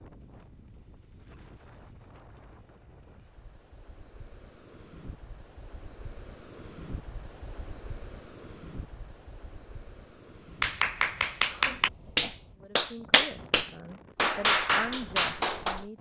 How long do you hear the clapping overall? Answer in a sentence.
The clapping can be heard for 5 seconds in total.